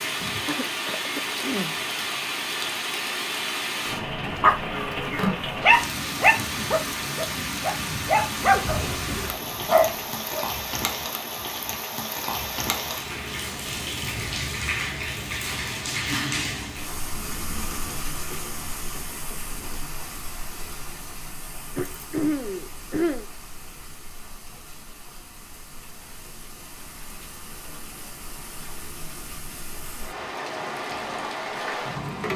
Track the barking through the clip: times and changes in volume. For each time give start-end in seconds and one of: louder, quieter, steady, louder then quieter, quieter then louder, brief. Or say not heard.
4.3-10.4 quieter then louder.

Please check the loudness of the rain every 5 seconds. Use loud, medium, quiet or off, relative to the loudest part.
loud, loud, loud, loud, quiet, quiet, loud.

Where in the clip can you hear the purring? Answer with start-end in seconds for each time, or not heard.
not heard.